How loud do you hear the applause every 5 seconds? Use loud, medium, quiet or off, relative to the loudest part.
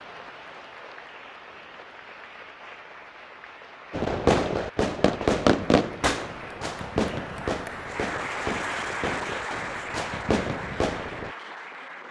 medium, loud, loud.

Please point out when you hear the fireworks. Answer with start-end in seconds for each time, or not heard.
3.9-11.3.